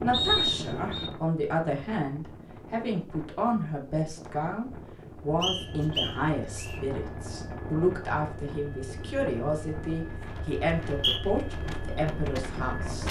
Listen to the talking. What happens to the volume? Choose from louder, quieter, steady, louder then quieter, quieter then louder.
steady.